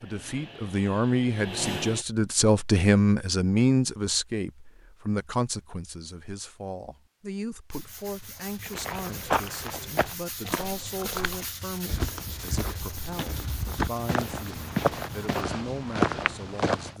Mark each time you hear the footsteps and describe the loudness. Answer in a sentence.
You can hear the footsteps from 8.7 to 16.9 s, getting quieter then louder.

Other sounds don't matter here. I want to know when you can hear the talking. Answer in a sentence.
The talking can be heard from 0.0 to 16.9 s.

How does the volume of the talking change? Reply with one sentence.
The volume of the talking goes down.